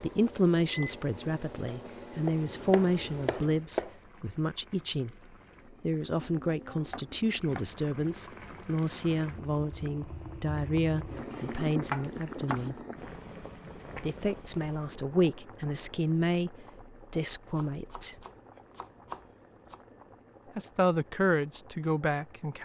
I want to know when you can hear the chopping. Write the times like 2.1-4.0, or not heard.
2.2-4.0, 6.2-7.8, 11.3-12.7, 17.5-19.8.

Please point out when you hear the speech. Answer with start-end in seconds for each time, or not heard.
0.0-5.2, 5.8-12.8, 14.0-18.1, 20.6-22.6.